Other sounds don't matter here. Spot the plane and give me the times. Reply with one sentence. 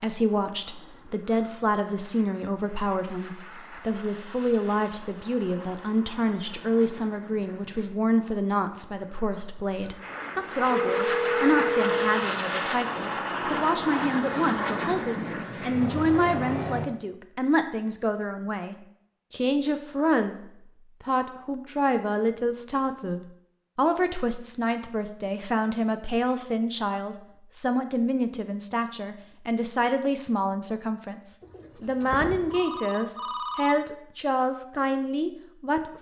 The plane can be heard from 0.1 to 16.9 s.